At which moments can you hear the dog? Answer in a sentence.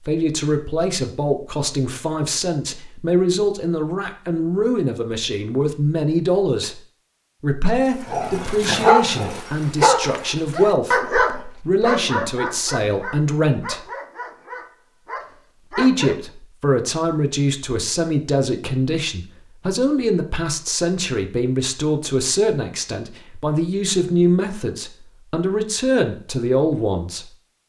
The dog can be heard from 8.1 to 16.1 s.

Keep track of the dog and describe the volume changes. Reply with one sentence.
The loudness of the dog goes down.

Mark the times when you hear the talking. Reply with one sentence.
You can hear the talking from 0.1 to 6.8 s, from 7.4 to 13.8 s and from 15.7 to 27.2 s.